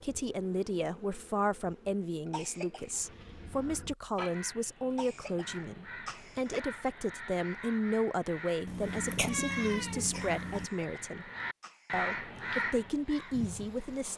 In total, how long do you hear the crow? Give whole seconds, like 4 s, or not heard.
11 s.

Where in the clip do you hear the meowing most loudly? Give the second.
9 s.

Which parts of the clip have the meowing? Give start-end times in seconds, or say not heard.
8.7-10.7.